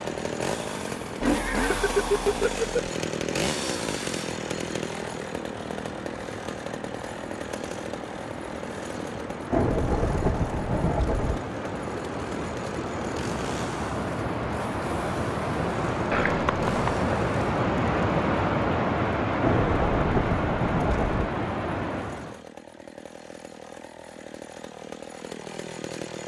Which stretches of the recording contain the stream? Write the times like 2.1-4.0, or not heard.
0.0-22.4.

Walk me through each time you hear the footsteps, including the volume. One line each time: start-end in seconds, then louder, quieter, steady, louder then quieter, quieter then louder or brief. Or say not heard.
not heard.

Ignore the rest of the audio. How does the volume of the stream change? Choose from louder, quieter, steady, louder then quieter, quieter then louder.
louder.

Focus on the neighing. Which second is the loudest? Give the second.
2 s.